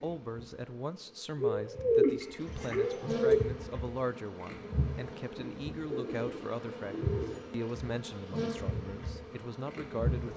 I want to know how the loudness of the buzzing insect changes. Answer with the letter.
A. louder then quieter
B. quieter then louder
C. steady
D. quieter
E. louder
E.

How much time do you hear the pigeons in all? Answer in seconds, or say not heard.
4 s.